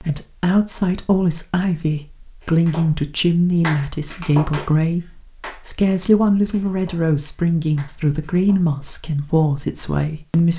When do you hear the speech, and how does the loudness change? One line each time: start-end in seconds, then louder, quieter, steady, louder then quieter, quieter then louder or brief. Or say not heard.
0.0-10.5 steady.